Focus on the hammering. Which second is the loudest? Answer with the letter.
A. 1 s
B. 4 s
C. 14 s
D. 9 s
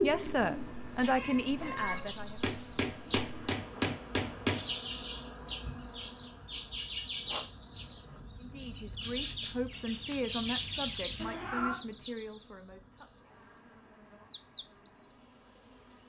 B.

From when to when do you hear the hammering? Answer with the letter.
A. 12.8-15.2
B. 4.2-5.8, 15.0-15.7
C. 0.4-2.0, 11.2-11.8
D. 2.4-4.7
D.